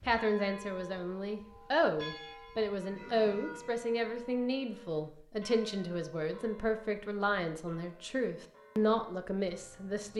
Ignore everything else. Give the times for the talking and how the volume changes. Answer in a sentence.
The talking can be heard from 0.1 to 10.1 s, at a steady volume.